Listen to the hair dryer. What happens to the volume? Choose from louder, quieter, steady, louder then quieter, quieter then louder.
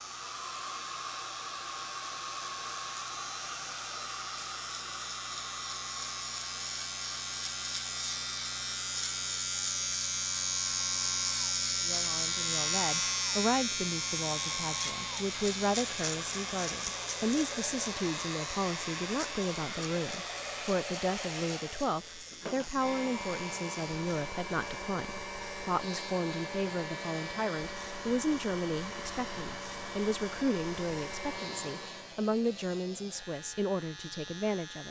quieter then louder.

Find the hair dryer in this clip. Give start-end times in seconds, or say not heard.
0.0-32.2.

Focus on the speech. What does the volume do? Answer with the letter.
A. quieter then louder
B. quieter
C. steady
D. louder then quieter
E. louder
C.